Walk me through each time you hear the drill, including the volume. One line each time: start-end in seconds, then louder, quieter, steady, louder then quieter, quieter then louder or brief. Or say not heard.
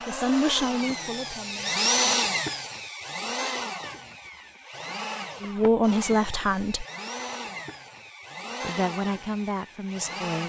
0.0-10.4 quieter.